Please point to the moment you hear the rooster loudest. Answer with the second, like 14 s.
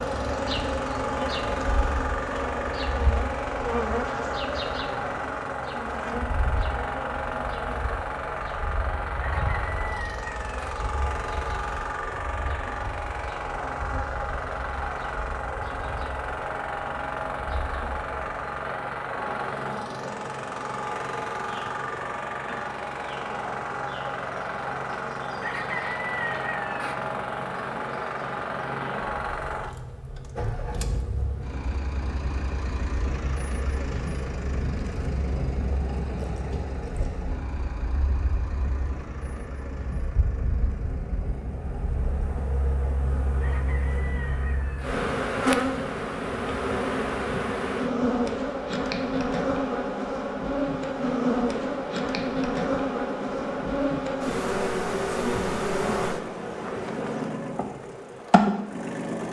26 s.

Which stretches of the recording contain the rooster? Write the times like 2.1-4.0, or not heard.
9.2-10.8, 25.4-26.9, 43.4-45.0.